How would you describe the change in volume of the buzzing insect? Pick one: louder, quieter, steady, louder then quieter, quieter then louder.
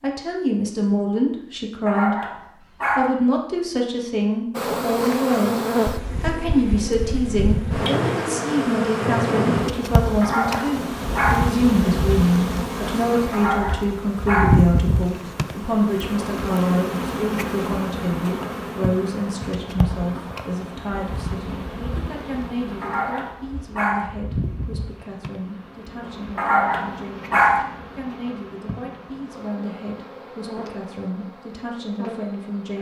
quieter.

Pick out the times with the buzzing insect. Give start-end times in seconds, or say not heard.
4.5-32.7.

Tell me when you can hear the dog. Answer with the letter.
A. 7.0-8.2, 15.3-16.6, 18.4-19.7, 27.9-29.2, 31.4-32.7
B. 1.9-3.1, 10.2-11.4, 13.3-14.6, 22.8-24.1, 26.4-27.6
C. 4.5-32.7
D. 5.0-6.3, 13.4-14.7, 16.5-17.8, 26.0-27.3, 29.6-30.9
B.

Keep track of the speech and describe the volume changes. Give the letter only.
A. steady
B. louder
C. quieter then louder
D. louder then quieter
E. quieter
E.